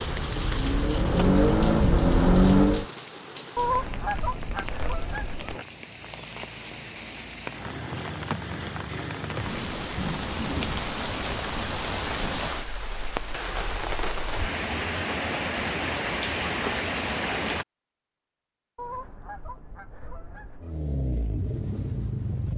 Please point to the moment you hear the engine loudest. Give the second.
2 s.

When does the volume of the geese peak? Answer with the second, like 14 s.
4 s.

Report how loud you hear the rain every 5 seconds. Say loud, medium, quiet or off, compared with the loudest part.
medium, medium, loud, loud, off.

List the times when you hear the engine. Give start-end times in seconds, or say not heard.
0.0-2.9, 20.6-22.5.